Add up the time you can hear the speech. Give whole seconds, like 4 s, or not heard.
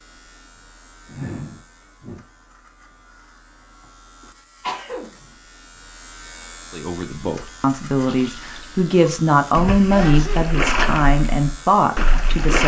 6 s.